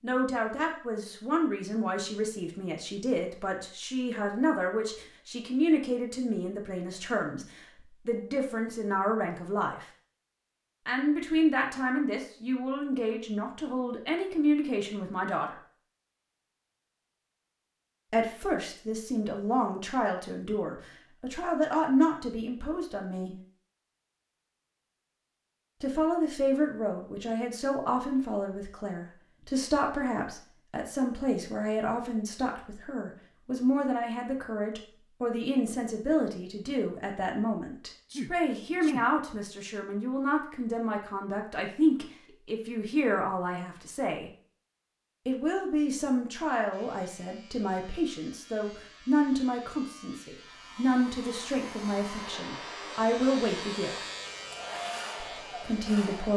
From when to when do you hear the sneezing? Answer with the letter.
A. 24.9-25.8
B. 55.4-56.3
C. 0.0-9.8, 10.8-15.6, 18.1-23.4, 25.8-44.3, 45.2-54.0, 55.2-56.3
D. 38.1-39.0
D.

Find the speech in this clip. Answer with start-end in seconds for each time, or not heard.
0.0-9.8, 10.8-15.6, 18.1-23.4, 25.8-44.3, 45.2-54.0, 55.2-56.3.